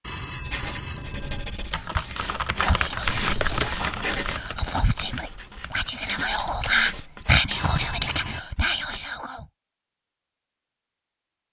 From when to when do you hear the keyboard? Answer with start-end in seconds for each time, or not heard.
1.7-7.3.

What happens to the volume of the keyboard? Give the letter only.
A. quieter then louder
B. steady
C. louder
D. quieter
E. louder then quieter
D.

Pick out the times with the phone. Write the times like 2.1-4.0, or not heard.
0.0-1.6, 7.5-8.4.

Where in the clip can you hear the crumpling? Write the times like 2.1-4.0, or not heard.
3.0-3.8.